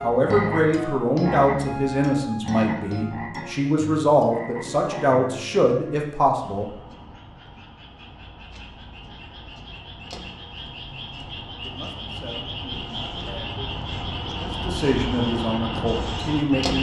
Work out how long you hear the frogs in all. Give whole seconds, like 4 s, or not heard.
17 s.